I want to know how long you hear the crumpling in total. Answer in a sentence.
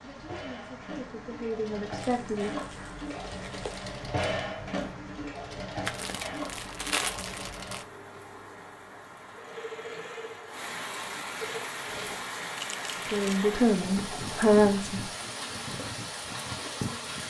You can hear the crumpling for 5 seconds altogether.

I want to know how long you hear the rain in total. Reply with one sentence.
The rain can be heard for 17 seconds in total.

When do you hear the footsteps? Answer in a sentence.
You can't hear the footsteps here.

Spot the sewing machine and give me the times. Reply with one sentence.
The sewing machine can be heard from 0.0 to 17.2 s.